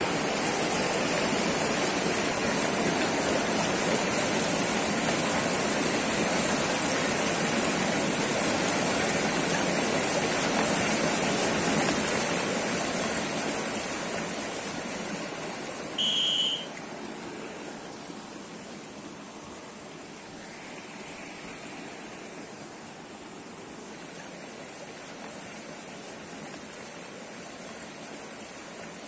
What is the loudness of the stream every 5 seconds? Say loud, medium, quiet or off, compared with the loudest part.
loud, loud, loud, quiet, quiet, quiet.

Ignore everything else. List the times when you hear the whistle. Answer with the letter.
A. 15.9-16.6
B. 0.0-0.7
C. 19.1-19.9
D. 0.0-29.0
A.